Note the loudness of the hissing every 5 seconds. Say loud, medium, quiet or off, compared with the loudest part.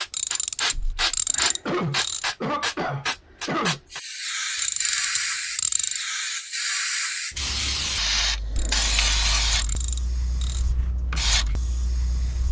loud, loud, medium.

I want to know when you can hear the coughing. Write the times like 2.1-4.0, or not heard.
1.6-3.8.